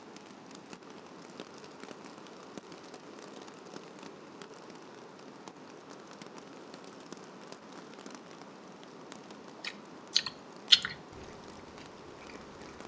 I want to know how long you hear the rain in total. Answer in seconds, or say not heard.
13 s.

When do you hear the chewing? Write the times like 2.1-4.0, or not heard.
9.6-12.8.